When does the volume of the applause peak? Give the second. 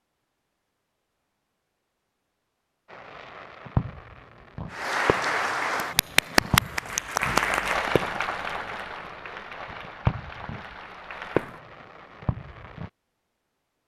7 s.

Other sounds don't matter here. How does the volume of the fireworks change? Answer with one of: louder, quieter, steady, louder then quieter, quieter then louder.
quieter then louder.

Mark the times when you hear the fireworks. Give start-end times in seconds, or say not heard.
2.9-12.9.